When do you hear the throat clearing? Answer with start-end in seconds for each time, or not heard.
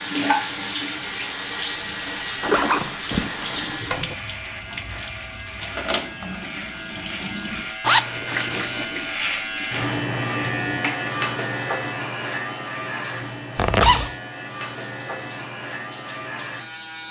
not heard.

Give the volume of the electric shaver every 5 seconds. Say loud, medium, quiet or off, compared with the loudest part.
medium, loud, loud, medium.